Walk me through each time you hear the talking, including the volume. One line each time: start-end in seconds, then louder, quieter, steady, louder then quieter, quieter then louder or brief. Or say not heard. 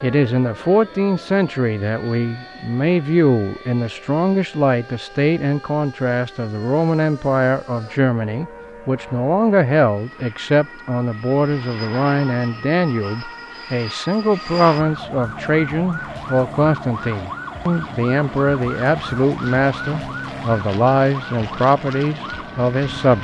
0.0-23.1 steady.